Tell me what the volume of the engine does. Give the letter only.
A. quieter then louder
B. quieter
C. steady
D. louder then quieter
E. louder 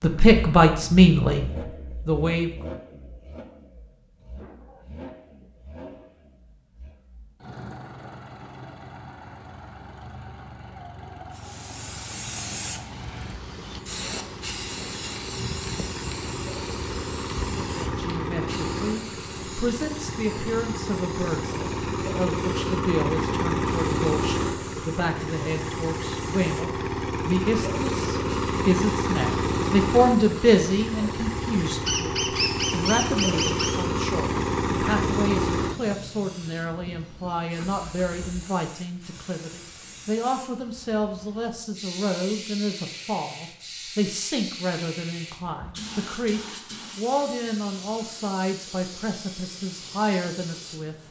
E.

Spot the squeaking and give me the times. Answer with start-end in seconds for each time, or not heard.
31.9-33.9.